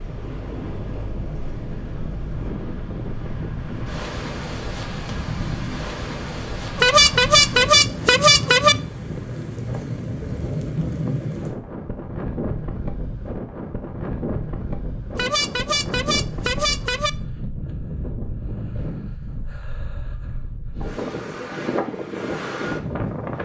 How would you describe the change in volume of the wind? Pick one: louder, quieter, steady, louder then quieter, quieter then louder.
steady.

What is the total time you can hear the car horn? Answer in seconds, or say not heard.
4 s.